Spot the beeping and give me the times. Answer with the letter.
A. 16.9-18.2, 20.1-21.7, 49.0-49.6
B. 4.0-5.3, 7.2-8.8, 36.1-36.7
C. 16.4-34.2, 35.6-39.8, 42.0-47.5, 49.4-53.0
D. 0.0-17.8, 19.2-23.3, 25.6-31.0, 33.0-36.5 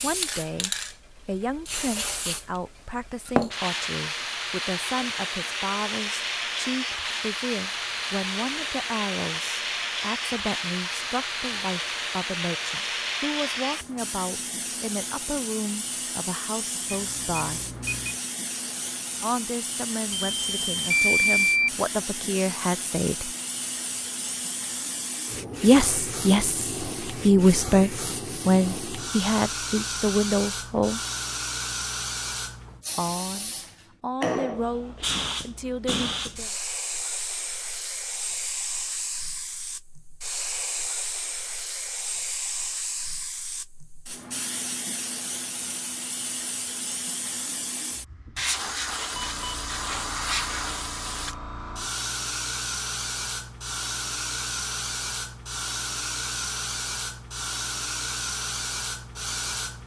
A.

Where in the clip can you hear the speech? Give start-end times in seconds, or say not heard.
0.0-17.8, 19.2-23.3, 25.6-31.0, 33.0-36.5.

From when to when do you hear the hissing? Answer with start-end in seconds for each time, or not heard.
0.0-59.8.